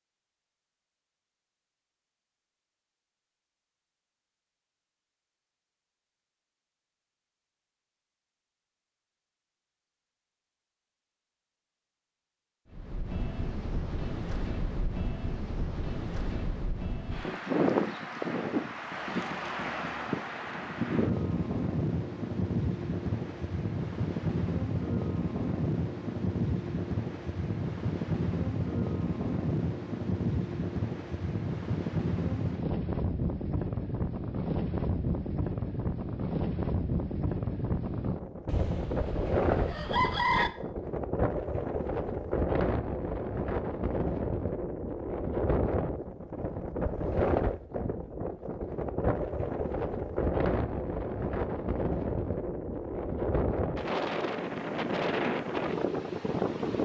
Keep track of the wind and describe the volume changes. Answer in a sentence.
The loudness of the wind stays about the same.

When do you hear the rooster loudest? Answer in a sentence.
The loudest moment of the rooster is at 40 seconds.